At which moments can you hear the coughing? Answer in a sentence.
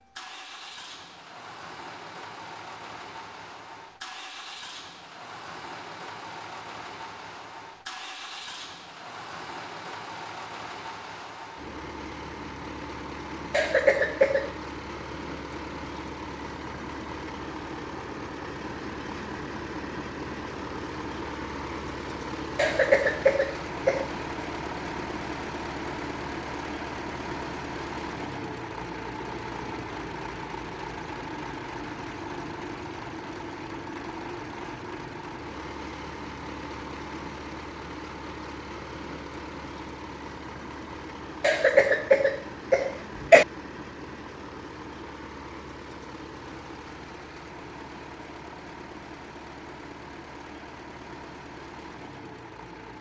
You can hear the coughing from 13.5 to 14.5 s, from 22.6 to 24.1 s and from 41.4 to 43.5 s.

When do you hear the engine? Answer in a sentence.
You can hear the engine from 0.0 to 52.9 s.